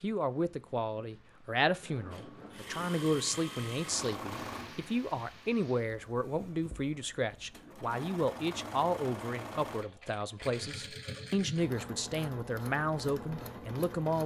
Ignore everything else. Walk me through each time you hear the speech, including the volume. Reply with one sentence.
The speech can be heard from 0.0 to 14.2 s, at a steady volume.